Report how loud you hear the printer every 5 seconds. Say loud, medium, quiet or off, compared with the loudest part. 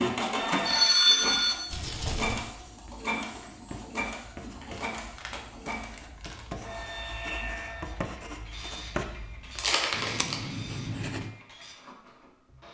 loud, medium, quiet.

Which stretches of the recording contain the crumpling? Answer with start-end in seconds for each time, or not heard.
1.7-2.5, 4.6-6.5, 9.6-10.4.